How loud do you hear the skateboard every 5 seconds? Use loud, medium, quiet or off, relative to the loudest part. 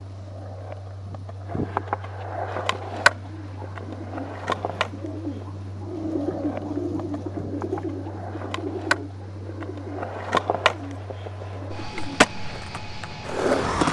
loud, medium, loud.